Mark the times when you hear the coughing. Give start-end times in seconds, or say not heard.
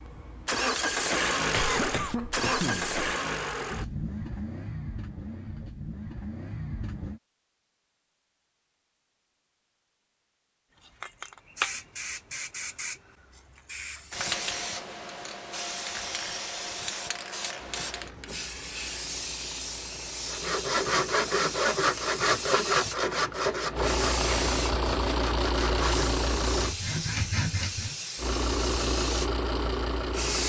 1.5-3.0.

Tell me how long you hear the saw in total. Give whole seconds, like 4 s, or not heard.
8 s.